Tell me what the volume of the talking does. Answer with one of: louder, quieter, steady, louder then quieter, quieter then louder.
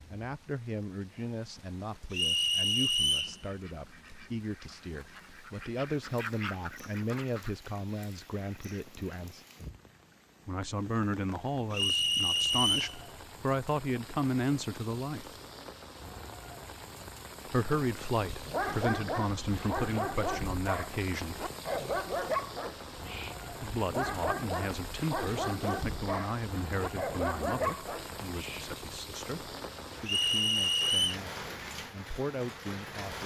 louder then quieter.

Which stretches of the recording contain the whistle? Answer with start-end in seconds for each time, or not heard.
2.1-3.4, 11.7-12.9, 30.1-31.2.